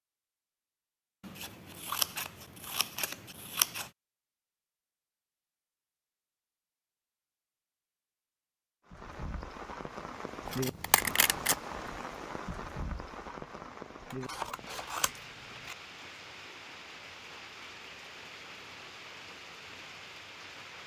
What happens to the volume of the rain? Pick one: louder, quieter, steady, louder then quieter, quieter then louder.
quieter.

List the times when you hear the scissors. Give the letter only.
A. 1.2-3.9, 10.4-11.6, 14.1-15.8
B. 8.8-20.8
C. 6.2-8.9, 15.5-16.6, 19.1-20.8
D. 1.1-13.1
A.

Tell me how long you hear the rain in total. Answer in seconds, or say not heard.
12 s.